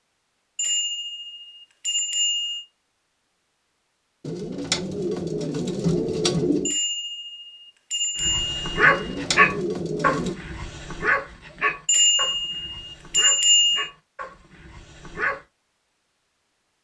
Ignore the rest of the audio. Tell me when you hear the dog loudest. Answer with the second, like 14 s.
9 s.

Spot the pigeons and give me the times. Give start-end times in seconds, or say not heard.
4.2-6.8, 8.8-10.3.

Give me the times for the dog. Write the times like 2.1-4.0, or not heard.
8.2-15.4.